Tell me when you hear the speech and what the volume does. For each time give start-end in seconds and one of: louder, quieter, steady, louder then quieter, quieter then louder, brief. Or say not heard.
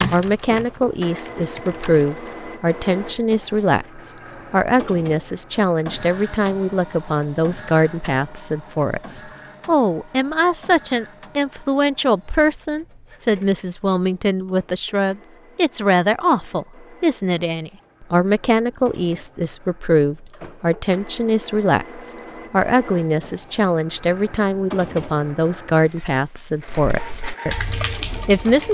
0.1-28.6 steady.